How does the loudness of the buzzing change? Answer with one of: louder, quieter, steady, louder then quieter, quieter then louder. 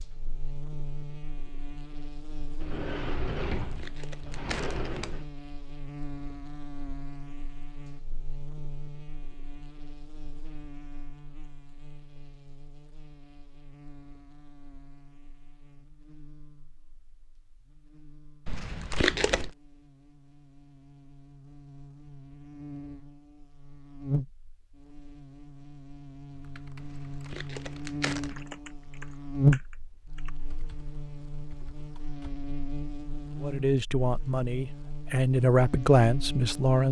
quieter then louder.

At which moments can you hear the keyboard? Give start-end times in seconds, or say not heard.
26.4-32.4.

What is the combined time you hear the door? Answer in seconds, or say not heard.
3 s.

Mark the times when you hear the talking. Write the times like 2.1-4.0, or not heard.
33.4-36.8.